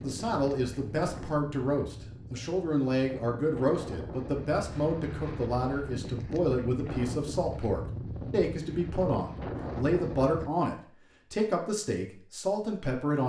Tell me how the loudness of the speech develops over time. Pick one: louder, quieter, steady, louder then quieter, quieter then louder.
steady.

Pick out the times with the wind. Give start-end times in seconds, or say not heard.
0.0-10.5.